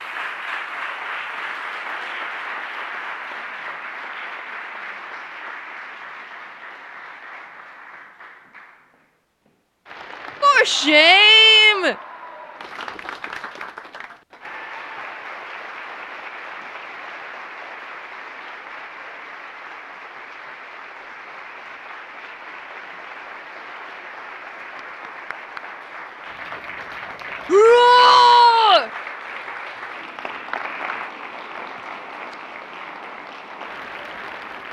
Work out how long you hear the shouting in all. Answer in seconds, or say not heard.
3 s.